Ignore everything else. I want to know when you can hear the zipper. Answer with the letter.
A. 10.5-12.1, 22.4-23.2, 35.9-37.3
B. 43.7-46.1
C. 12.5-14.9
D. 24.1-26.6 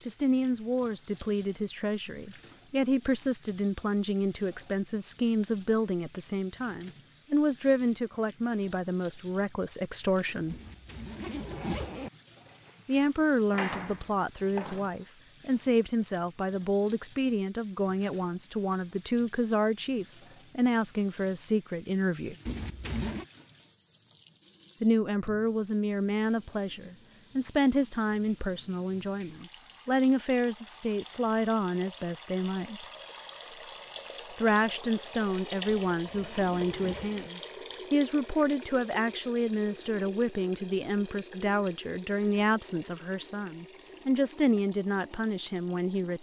A.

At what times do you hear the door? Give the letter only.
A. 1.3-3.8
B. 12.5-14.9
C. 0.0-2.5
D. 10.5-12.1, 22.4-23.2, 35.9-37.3
B.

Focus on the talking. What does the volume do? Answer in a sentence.
The loudness of the talking stays about the same.